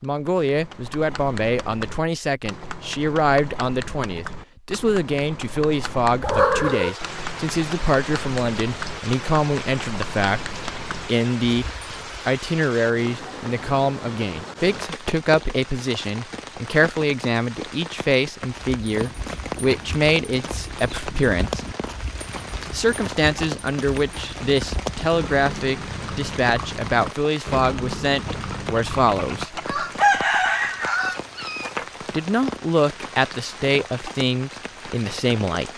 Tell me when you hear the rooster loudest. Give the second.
30 s.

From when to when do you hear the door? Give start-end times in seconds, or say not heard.
not heard.